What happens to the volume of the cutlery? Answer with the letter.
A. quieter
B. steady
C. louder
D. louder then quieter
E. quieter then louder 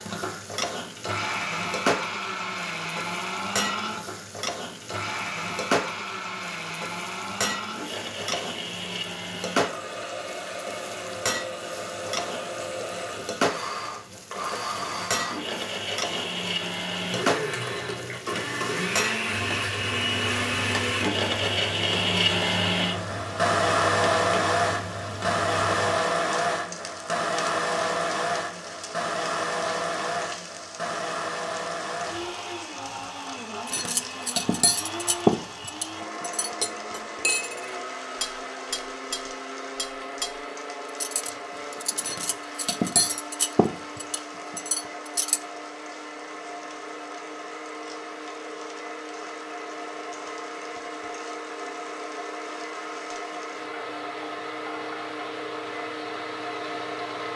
E.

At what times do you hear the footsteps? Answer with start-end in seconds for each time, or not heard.
not heard.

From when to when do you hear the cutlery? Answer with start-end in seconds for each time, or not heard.
33.6-45.4.